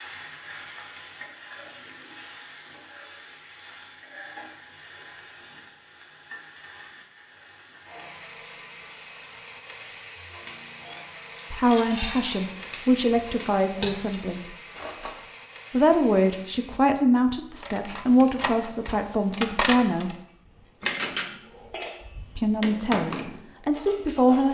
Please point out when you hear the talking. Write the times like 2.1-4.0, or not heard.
11.5-14.6, 15.7-20.1, 22.4-24.4.